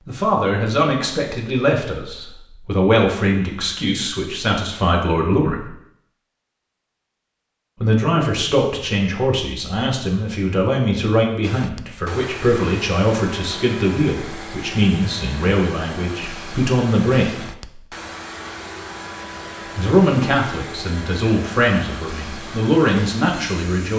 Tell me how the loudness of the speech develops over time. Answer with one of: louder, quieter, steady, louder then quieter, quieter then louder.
steady.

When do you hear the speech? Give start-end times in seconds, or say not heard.
0.1-5.7, 7.8-17.5, 19.8-23.9.